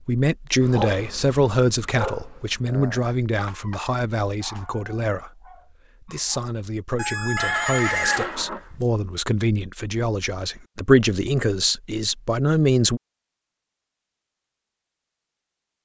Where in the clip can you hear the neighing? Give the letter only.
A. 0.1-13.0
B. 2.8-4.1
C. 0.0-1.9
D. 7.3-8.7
D.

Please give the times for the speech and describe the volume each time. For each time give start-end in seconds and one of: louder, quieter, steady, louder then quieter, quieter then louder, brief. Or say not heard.
0.1-13.0 quieter then louder.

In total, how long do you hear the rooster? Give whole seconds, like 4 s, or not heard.
2 s.